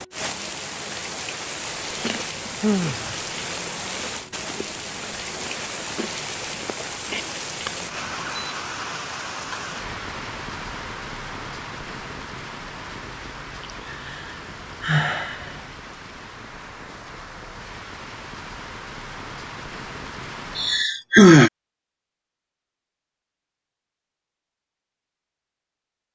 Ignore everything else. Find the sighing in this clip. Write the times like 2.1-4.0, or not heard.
2.6-3.2, 13.8-15.6, 20.6-21.5.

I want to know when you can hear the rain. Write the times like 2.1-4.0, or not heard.
0.0-20.9.